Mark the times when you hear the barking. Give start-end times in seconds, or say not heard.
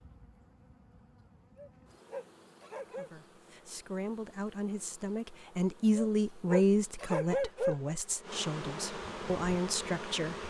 1.6-3.1, 6.0-8.0.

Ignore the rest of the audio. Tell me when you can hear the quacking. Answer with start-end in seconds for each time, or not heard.
not heard.